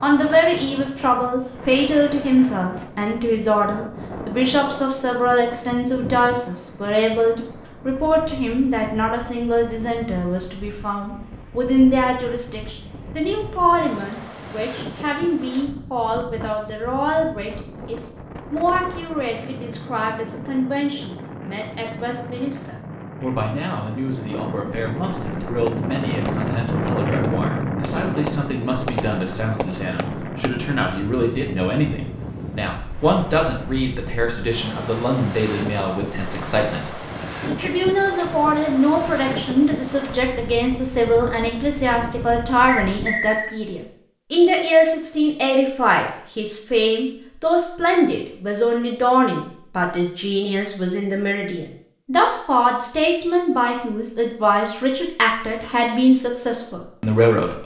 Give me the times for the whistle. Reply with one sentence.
The whistle can be heard from 42.6 to 43.5 s.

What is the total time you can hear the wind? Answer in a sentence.
The wind can be heard for 43 seconds in total.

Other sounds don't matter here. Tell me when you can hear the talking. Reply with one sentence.
You can hear the talking from 0.0 to 57.6 s.